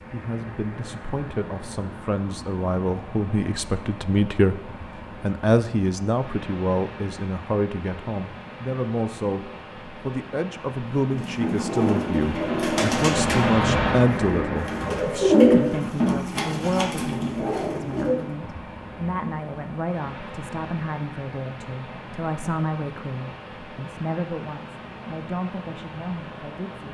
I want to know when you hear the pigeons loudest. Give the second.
15 s.